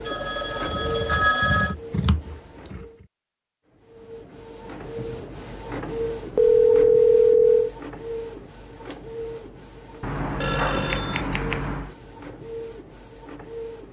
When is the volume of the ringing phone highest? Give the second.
7 s.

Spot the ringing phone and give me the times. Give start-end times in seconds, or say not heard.
0.1-1.8, 6.3-7.8, 10.4-11.2.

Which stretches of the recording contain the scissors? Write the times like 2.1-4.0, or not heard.
0.7-2.9, 10.0-11.9.